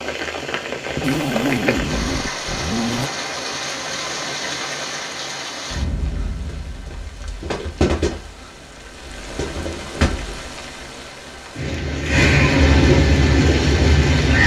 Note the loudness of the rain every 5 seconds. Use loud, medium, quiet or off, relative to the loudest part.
medium, medium, loud.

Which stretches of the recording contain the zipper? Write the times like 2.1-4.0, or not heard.
1.0-3.1.